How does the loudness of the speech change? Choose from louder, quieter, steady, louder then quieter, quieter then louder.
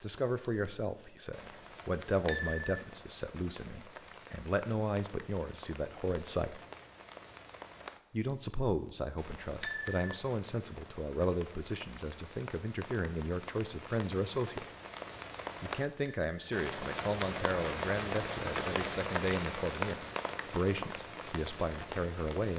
steady.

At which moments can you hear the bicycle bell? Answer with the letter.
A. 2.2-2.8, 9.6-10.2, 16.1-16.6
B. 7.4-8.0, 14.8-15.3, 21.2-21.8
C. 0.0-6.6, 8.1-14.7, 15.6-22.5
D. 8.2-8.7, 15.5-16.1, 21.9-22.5
A.